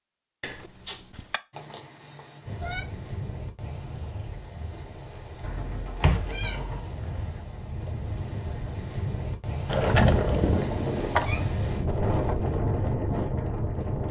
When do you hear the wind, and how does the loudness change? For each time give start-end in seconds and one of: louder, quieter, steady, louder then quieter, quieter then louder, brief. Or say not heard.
2.5-14.0 louder.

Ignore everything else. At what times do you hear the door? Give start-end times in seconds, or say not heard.
0.4-1.4, 6.0-7.4, 9.7-11.3.